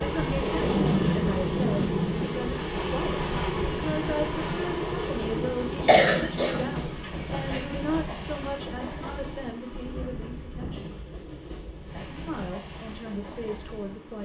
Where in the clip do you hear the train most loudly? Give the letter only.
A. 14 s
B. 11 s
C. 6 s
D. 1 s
D.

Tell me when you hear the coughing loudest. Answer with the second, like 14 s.
6 s.